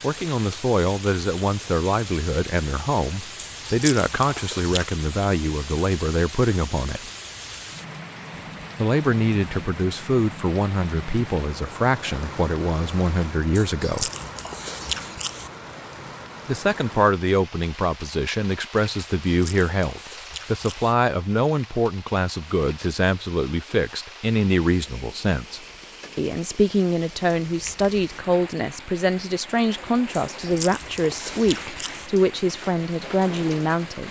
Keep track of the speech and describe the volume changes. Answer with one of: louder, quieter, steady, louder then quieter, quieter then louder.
steady.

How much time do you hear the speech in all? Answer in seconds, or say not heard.
30 s.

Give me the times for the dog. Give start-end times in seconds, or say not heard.
not heard.